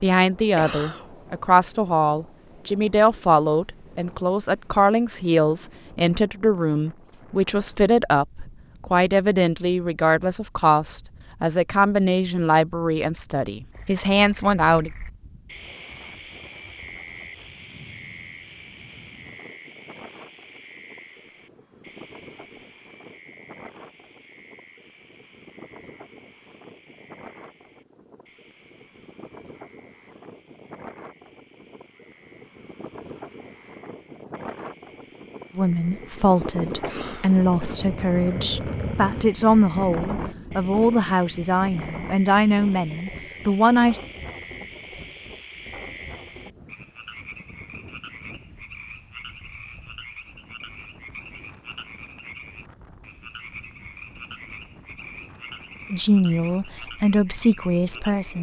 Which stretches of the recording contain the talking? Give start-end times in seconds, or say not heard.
0.0-14.9, 35.5-44.0, 55.9-58.3.